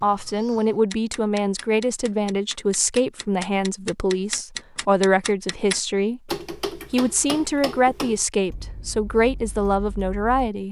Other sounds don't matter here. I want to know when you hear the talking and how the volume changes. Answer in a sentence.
You can hear the talking from 0.0 to 10.6 s, at a steady volume.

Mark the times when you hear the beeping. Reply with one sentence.
You can't hear the beeping here.